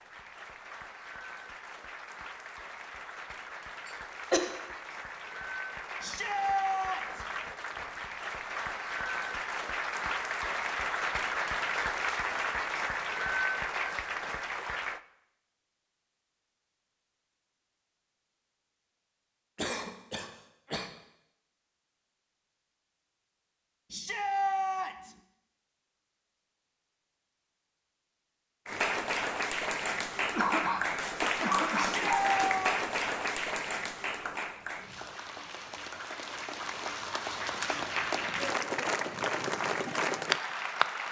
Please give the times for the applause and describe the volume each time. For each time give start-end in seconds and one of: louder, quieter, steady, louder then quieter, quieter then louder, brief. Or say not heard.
0.0-15.0 louder
28.6-41.0 quieter then louder.